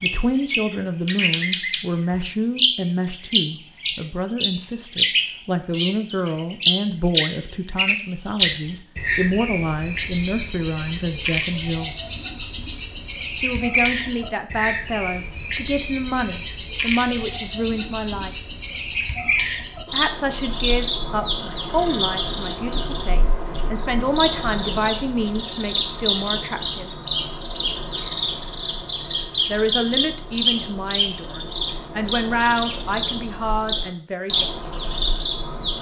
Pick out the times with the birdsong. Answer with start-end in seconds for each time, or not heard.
0.0-35.7.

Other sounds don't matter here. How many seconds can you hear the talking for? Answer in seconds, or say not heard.
29 s.